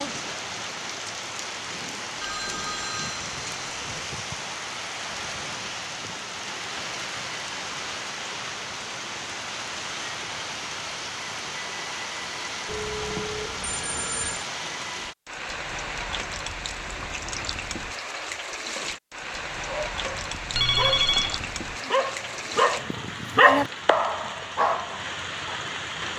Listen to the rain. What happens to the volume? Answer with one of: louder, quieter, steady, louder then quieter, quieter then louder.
steady.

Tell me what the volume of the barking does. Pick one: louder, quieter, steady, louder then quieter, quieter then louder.
louder then quieter.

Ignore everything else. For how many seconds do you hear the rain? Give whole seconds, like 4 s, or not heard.
26 s.